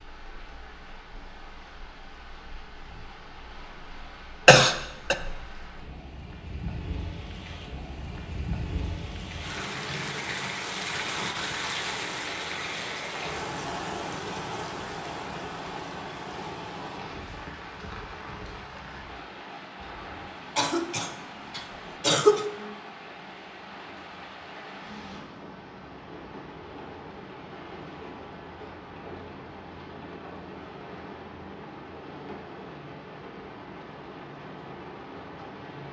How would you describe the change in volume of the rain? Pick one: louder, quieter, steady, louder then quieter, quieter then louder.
louder then quieter.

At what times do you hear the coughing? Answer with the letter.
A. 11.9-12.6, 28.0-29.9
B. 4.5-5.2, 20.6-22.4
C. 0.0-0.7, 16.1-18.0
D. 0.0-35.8
B.